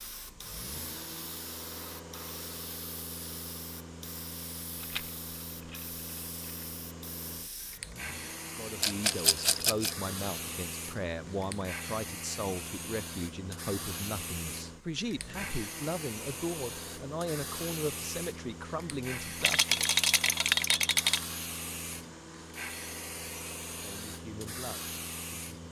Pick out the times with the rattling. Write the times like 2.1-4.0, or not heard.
4.8-6.7, 8.8-9.9, 19.4-21.2.